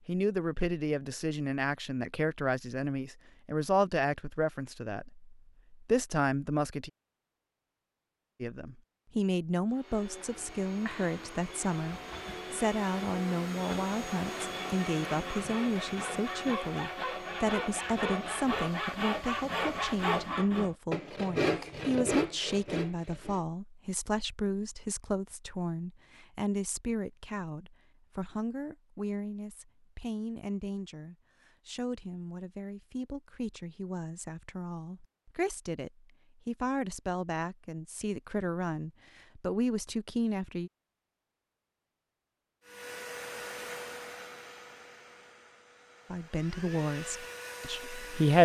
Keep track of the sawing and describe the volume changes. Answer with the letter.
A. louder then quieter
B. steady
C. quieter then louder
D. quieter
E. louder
E.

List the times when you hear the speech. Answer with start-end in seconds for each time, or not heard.
0.1-6.9, 8.4-40.7, 46.1-48.3.